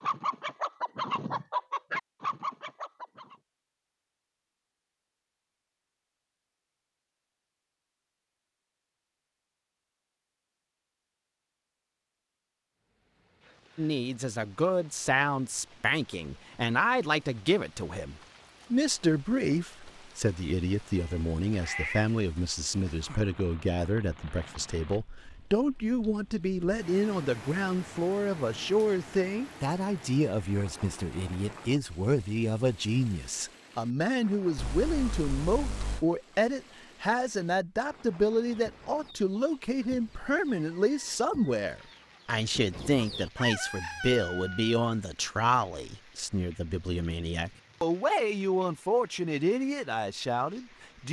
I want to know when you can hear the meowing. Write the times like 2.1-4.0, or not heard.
20.9-22.1, 34.5-36.0.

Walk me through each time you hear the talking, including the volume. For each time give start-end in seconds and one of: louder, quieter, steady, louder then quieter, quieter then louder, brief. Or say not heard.
13.8-51.0 steady.